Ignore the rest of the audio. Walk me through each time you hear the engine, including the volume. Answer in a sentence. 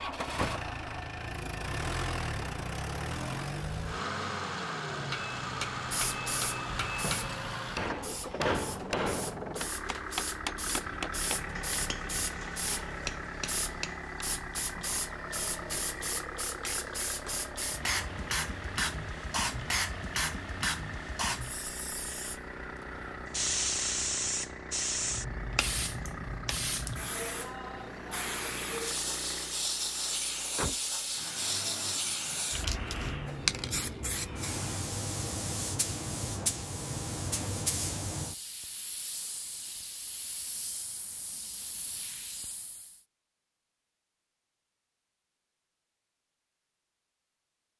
You can hear the engine from 0.0 to 35.0 s, getting quieter.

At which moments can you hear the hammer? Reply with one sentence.
The hammer can be heard from 5.0 to 14.2 s.